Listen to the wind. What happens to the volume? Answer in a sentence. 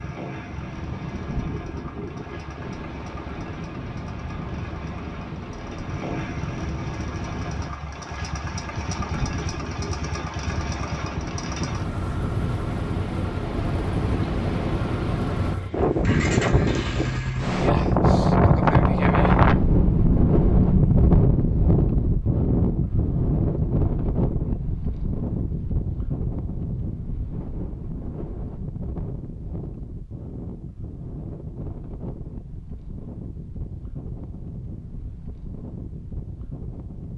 The loudness of the wind goes up, then down.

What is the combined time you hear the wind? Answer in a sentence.
The wind can be heard for 37 seconds in total.